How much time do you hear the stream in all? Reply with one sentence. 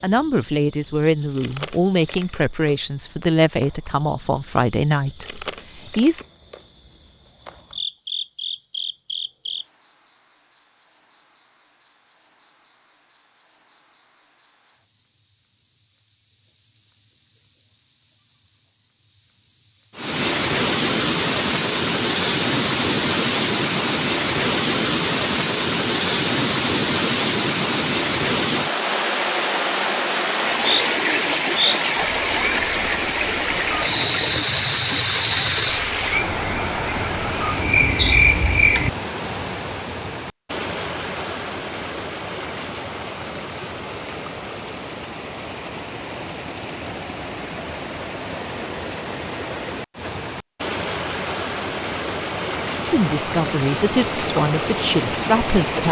You can hear the stream for 36 seconds altogether.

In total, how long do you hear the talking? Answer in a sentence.
You can hear the talking for 9 seconds altogether.